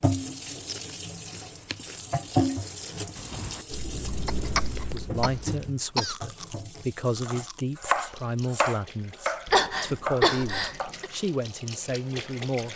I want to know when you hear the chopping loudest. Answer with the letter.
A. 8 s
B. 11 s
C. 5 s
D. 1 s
A.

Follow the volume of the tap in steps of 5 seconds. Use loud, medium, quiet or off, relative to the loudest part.
loud, medium, medium.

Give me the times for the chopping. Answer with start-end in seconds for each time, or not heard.
7.2-10.9.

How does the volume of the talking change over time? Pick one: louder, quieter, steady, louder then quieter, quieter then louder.
steady.